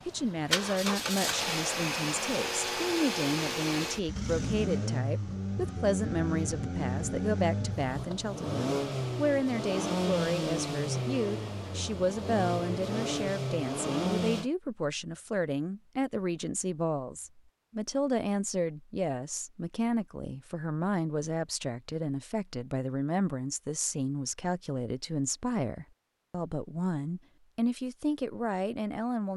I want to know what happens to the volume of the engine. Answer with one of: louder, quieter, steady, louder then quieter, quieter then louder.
steady.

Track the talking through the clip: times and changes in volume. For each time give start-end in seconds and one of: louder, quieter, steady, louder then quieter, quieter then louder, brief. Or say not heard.
0.1-29.3 steady.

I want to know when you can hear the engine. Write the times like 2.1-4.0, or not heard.
0.0-14.5.